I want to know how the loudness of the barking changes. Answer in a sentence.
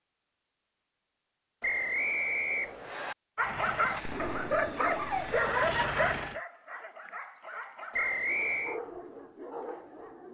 The loudness of the barking goes down.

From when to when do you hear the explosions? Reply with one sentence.
The explosions can be heard from 4.0 to 5.3 s.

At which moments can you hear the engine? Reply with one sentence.
The engine can be heard from 3.4 to 6.4 s.